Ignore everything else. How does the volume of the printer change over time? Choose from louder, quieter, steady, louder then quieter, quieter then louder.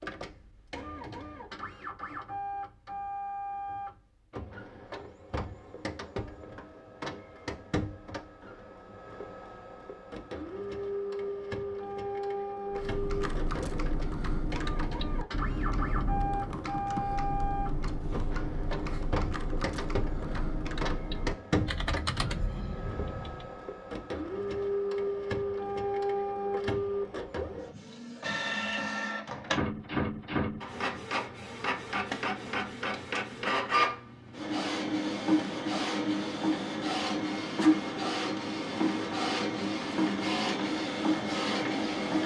louder.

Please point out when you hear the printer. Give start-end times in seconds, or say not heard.
0.0-42.2.